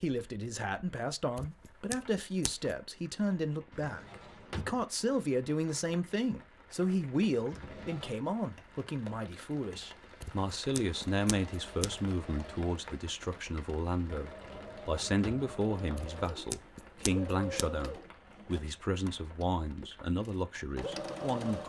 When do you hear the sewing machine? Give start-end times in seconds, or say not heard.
10.8-21.6.